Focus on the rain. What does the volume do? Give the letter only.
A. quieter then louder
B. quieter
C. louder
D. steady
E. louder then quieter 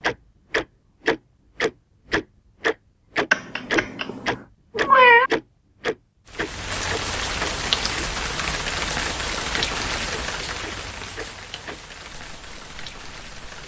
B.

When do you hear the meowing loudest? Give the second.
5 s.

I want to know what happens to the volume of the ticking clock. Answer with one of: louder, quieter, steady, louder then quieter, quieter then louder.
quieter.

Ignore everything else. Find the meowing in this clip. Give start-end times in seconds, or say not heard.
3.3-5.3.